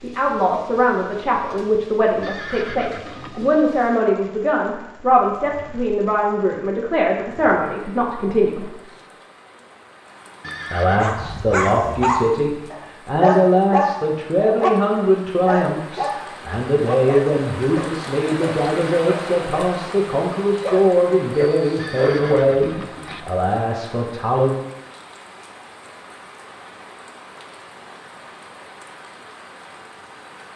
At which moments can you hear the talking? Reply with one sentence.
The talking can be heard from 0.0 to 8.7 s and from 10.7 to 24.6 s.